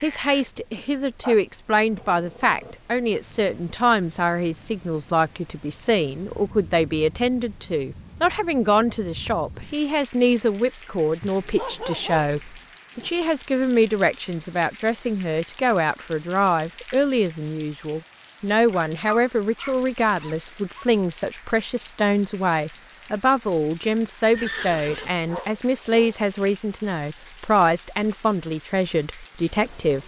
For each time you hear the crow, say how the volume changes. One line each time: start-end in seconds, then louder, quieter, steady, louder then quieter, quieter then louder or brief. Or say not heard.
not heard.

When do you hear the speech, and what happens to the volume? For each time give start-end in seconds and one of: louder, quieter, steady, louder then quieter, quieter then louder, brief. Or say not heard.
0.0-30.0 steady.